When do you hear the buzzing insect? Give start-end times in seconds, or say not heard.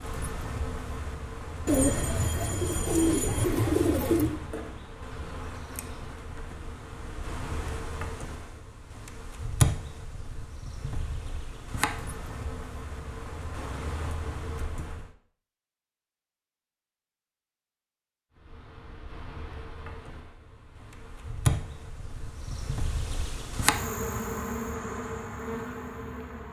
0.0-15.2, 18.3-26.4.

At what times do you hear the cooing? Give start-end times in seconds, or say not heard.
1.6-4.4.